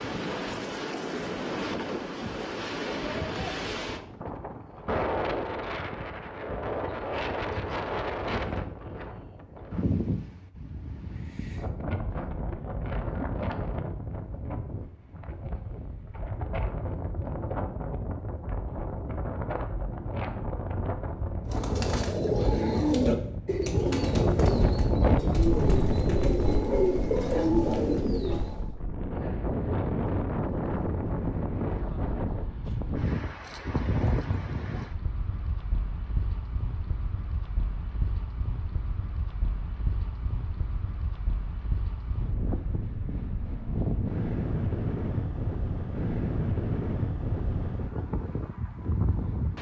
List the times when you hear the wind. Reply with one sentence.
The wind can be heard from 0.0 to 49.5 s.